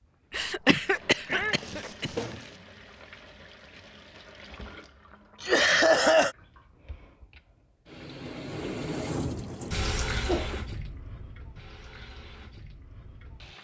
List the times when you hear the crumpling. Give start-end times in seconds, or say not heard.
1.2-2.6.